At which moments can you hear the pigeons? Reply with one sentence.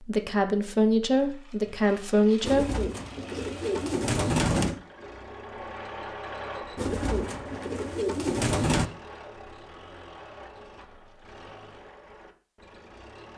You can hear the pigeons from 2.4 to 4.8 s and from 6.8 to 8.9 s.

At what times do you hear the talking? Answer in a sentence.
You can hear the talking from 0.0 to 2.6 s.